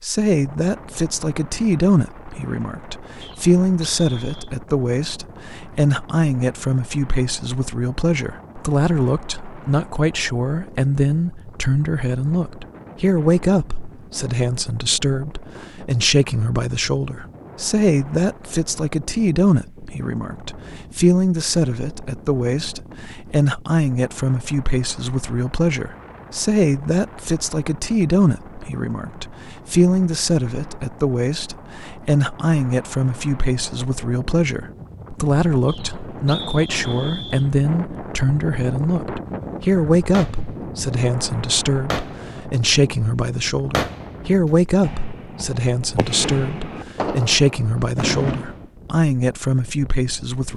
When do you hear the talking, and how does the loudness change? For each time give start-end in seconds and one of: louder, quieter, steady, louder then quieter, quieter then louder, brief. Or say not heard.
0.0-50.5 steady.